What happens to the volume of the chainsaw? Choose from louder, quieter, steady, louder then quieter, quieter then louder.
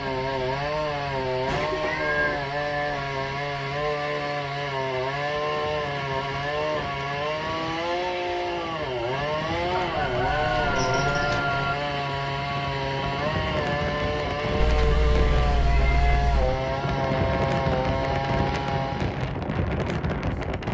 steady.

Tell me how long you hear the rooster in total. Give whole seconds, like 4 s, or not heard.
2 s.